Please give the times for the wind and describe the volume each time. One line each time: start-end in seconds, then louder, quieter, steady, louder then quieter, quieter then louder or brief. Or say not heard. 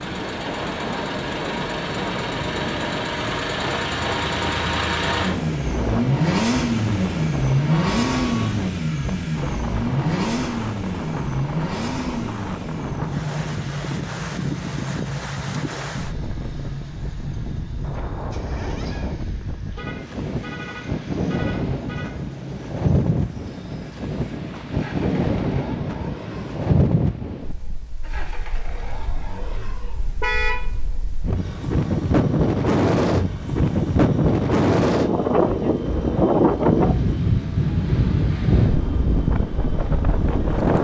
0.0-40.7 louder.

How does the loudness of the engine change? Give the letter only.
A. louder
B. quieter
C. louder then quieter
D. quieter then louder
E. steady
B.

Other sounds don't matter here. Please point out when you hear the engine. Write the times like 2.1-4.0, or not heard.
0.0-40.7.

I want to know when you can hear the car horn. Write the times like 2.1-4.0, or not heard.
7.7-8.6, 19.7-22.1, 30.2-30.6.